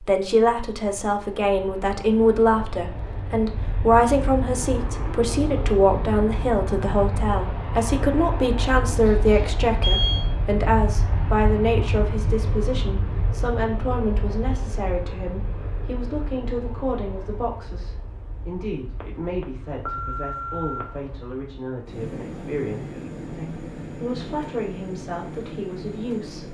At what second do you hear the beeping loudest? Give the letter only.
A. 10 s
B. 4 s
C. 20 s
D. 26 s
A.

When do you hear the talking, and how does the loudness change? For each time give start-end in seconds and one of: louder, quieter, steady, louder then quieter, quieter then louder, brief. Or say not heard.
0.0-26.4 quieter.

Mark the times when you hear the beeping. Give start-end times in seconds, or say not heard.
8.9-10.3, 19.0-20.9.